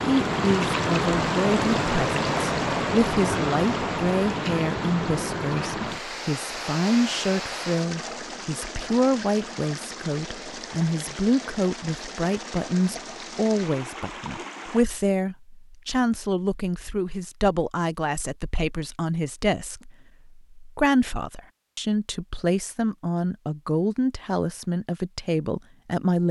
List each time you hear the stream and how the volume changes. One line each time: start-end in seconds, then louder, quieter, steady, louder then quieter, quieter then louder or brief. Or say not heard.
0.0-14.8 quieter.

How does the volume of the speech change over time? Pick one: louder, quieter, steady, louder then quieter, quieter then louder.
steady.